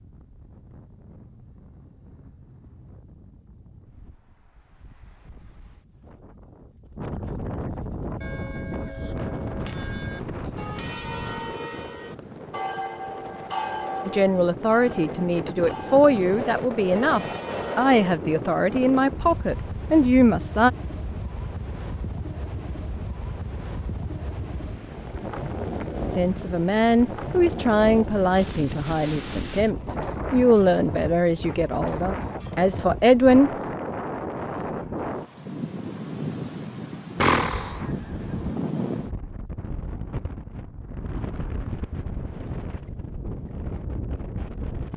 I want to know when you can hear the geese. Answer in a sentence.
You can hear the geese from 37.2 to 38.5 s.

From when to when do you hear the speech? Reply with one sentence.
You can hear the speech from 14.1 to 20.7 s and from 26.1 to 33.5 s.